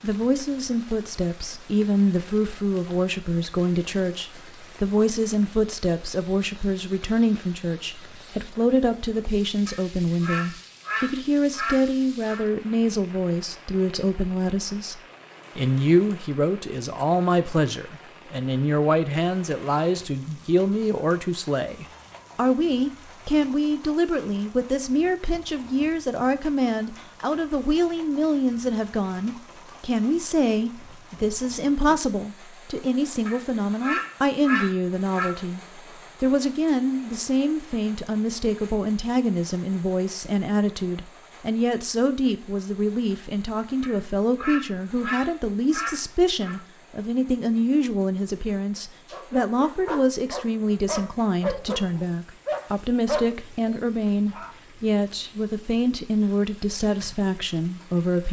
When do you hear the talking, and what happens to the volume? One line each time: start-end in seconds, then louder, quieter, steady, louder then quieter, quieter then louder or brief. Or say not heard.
0.0-58.2 steady.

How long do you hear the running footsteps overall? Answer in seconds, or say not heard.
not heard.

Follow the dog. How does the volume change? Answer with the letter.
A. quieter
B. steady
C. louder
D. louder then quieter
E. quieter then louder
D.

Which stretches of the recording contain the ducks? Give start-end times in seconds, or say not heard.
9.7-12.4, 33.2-35.3, 43.8-46.5.